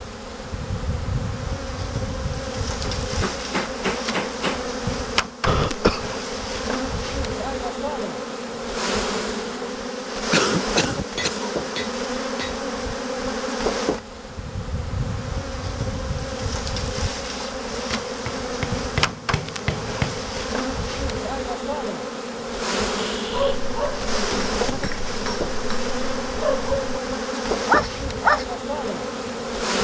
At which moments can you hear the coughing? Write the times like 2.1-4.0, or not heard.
5.5-6.1, 10.3-11.4, 22.9-23.6.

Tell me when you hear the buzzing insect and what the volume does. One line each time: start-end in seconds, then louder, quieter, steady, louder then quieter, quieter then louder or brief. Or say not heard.
0.0-29.7 steady.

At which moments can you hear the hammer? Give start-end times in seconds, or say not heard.
2.8-4.7, 11.2-12.6, 17.9-20.4, 24.3-25.9.